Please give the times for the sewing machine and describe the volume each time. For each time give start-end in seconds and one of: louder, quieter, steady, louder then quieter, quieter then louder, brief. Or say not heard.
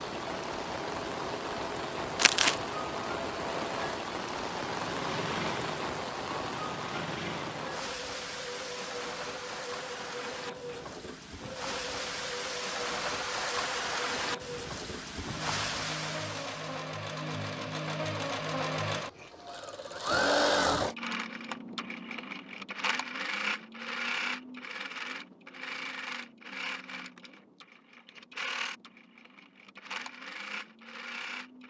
0.0-31.6 louder then quieter.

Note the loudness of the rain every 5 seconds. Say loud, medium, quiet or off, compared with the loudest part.
loud, loud, loud, loud, off, off, off.